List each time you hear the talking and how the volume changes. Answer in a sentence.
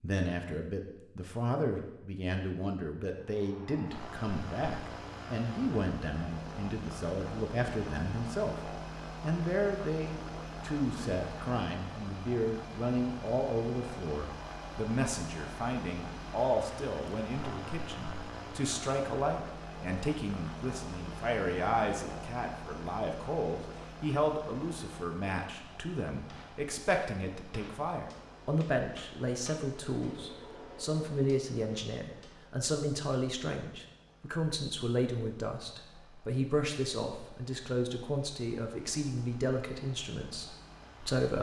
You can hear the talking from 0.0 to 41.3 s, at a steady volume.